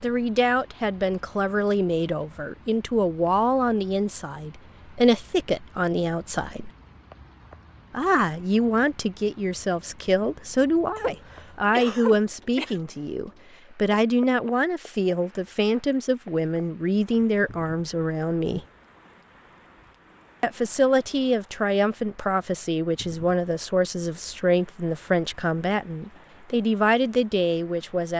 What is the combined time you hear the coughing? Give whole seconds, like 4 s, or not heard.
2 s.